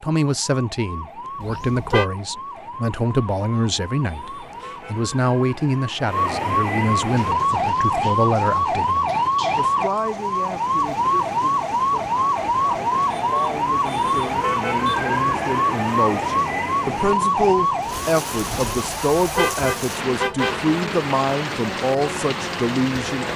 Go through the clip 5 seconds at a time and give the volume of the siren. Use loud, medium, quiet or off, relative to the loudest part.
quiet, loud, loud, loud, quiet.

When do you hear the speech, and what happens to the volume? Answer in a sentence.
The speech can be heard from 0.0 to 23.3 s, getting quieter then louder.